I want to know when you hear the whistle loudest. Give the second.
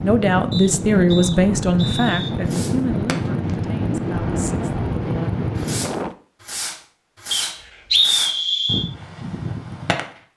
8 s.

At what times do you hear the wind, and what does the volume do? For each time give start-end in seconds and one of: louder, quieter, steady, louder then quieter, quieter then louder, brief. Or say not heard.
0.0-6.2 steady.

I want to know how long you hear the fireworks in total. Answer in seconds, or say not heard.
8 s.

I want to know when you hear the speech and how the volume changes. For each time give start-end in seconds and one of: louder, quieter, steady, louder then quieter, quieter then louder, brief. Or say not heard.
0.0-5.3 quieter.